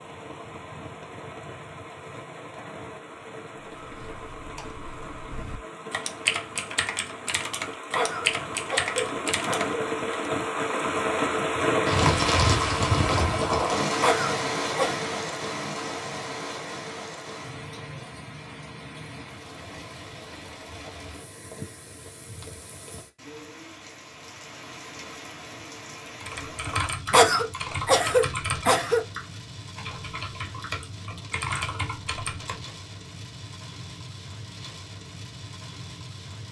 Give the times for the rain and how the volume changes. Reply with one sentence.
You can hear the rain from 0.0 to 36.4 s, getting louder then quieter.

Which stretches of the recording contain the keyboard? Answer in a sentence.
The keyboard can be heard from 3.8 to 10.3 s and from 26.2 to 32.7 s.